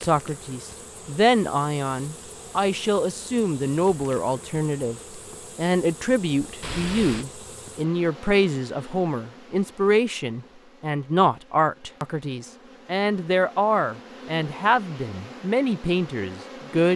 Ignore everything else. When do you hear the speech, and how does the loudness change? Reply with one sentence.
You can hear the speech from 0.0 to 16.9 s, at a steady volume.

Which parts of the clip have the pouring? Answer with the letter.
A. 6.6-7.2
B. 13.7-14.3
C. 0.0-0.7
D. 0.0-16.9
A.